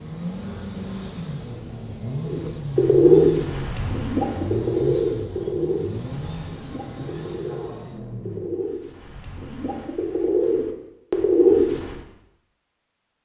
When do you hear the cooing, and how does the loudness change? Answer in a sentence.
The cooing can be heard from 2.2 to 11.9 s, getting quieter then louder.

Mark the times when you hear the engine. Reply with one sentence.
The engine can be heard from 0.0 to 8.6 s.